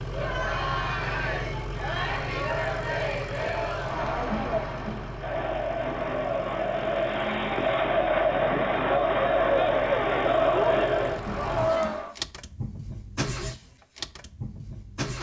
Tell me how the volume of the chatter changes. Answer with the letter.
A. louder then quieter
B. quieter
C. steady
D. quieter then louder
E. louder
E.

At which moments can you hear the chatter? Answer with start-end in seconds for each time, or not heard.
0.0-12.2.